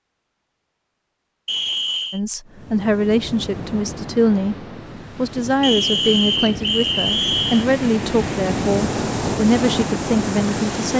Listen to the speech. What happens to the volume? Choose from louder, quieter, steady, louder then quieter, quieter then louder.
steady.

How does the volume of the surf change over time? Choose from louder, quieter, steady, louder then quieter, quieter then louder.
louder.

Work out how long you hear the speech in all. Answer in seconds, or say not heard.
9 s.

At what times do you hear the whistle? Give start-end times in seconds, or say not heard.
1.4-2.2, 5.6-7.7.